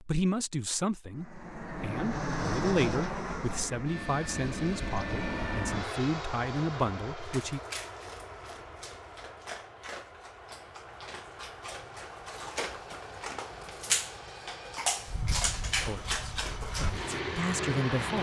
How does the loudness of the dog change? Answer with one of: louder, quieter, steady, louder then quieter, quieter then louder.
louder.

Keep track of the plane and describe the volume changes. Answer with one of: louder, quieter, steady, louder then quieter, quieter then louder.
quieter then louder.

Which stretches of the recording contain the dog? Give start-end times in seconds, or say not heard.
7.2-17.2.